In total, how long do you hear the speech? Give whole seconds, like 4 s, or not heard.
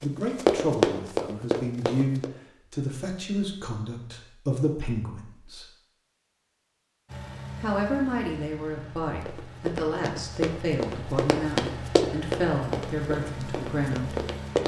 12 s.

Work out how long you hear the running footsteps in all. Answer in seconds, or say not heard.
7 s.